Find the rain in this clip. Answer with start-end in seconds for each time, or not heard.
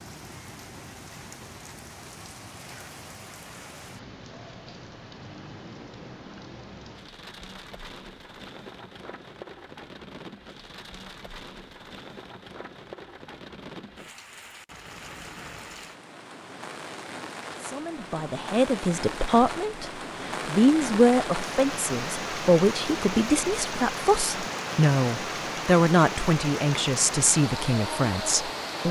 0.0-28.8.